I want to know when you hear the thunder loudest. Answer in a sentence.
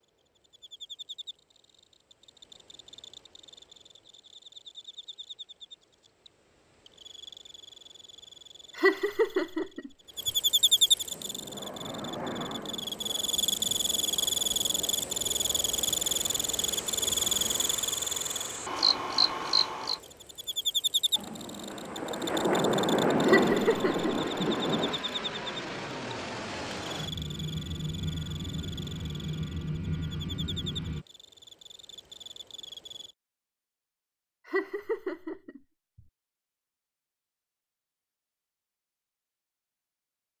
The loudest moment of the thunder is at 23 seconds.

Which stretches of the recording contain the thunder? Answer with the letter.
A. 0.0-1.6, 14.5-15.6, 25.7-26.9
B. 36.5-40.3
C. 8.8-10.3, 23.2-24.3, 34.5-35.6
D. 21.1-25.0
D.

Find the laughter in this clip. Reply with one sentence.
You can hear the laughter from 8.8 to 10.3 s, from 23.2 to 24.3 s and from 34.5 to 35.6 s.